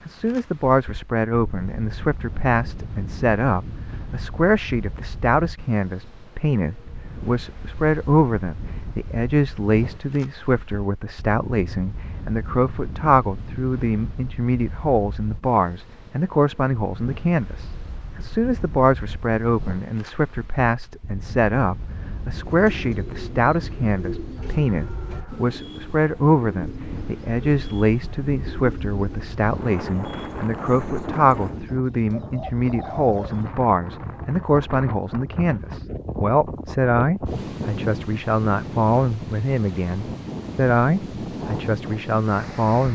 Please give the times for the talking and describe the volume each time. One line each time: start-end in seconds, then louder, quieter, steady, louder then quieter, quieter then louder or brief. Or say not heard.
0.1-42.9 steady.